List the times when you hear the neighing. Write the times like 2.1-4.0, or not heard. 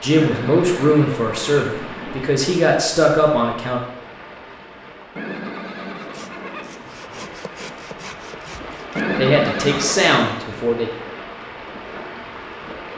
0.1-2.2, 5.2-6.8, 8.9-10.2.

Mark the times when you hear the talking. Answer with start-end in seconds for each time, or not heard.
0.0-3.8, 9.2-10.9.